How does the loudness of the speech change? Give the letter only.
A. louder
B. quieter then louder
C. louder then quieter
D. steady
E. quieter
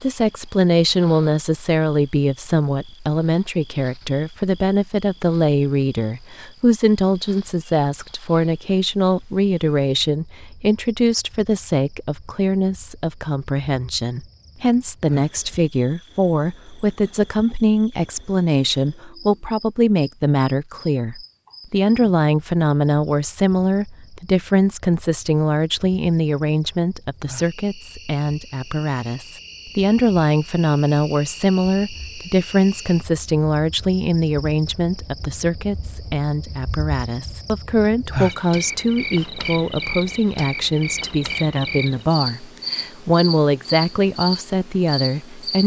D.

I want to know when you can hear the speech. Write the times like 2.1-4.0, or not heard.
0.0-45.6.